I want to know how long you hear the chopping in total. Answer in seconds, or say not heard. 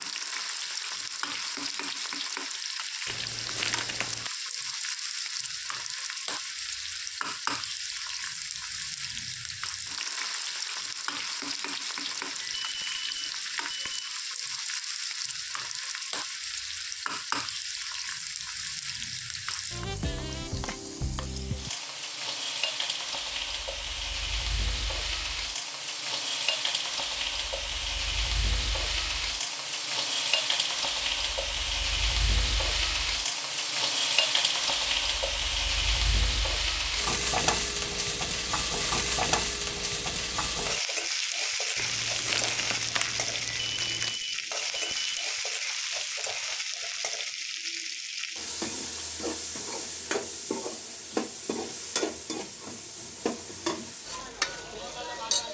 not heard.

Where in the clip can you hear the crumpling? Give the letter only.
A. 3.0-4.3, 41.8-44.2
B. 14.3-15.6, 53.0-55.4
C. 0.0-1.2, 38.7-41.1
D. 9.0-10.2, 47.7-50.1
A.